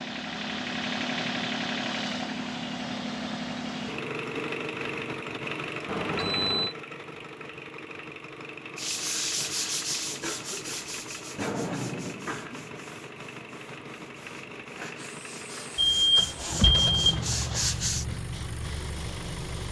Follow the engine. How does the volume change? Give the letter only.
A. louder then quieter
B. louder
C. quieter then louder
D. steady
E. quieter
E.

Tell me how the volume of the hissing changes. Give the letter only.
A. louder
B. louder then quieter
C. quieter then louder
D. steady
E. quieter
B.